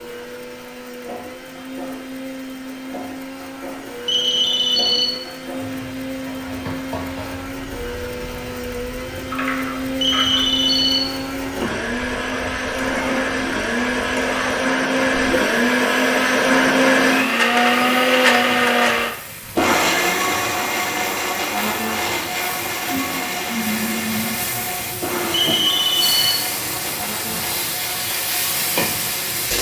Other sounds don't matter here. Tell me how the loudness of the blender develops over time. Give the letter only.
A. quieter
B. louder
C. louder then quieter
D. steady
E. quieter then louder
C.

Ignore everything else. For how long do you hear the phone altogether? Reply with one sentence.
You can hear the phone for 3 seconds altogether.